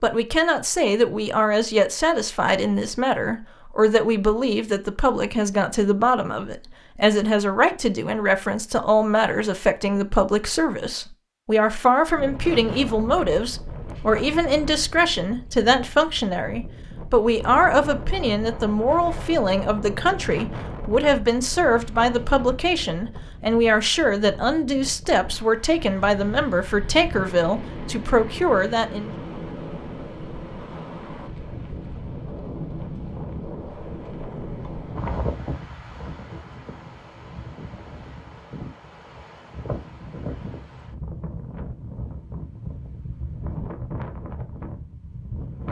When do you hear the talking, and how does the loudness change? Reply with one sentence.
You can hear the talking from 0.0 to 29.1 s, at a steady volume.